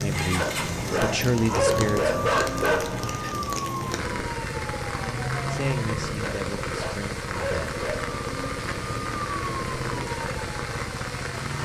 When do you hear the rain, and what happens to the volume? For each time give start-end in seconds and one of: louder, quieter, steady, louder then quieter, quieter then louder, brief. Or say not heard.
0.0-11.6 steady.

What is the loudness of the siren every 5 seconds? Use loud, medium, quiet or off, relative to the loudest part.
loud, loud, medium.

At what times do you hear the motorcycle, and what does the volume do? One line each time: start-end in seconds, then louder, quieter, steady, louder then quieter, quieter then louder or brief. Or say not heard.
0.0-11.6 steady.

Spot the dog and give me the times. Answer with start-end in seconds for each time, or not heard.
0.3-3.3, 6.2-8.2.